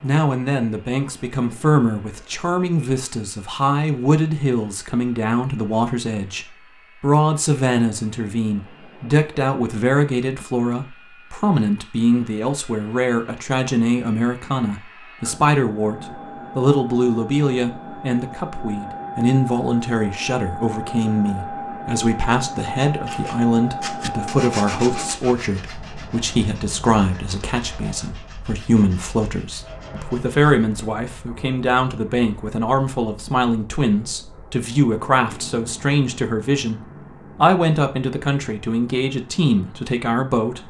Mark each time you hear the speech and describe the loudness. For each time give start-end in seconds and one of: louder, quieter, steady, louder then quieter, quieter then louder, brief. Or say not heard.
0.0-40.6 steady.